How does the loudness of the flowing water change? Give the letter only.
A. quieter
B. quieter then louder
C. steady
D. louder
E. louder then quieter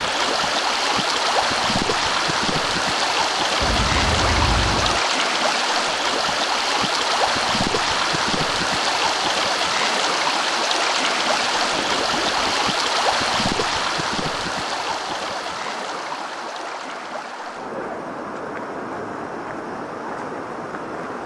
A.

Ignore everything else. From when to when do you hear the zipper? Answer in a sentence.
The zipper can be heard from 3.6 to 5.0 s and from 11.4 to 12.7 s.